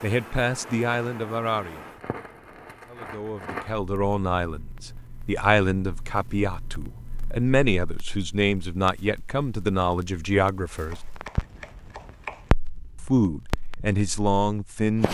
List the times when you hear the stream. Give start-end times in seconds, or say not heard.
not heard.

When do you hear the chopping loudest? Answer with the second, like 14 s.
12 s.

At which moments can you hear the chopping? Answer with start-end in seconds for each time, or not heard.
10.7-12.5.